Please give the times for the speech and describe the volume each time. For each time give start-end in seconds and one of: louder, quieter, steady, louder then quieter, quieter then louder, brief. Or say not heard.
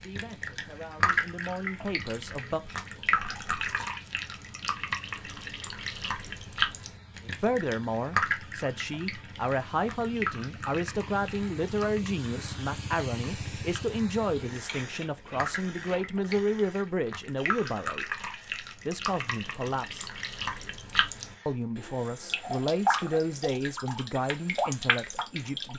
0.0-2.6 brief
7.3-18.1 steady
18.9-20.1 brief
21.4-25.7 louder then quieter.